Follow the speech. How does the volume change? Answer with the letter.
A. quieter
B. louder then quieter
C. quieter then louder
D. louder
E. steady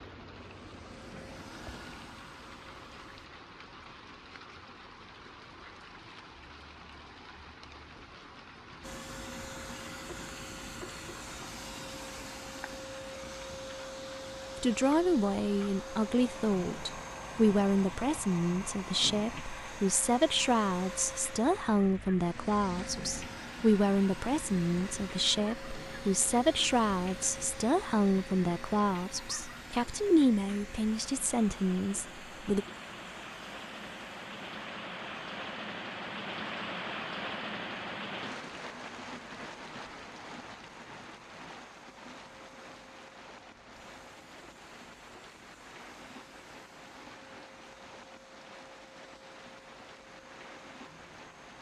E.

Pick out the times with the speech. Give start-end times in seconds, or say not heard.
14.6-32.6.